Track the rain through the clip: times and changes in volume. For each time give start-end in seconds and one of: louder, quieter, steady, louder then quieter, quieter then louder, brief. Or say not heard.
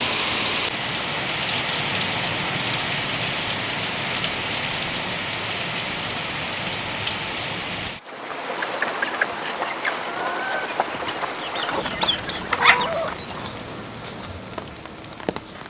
0.0-15.6 quieter.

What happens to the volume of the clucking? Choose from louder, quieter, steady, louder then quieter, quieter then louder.
quieter then louder.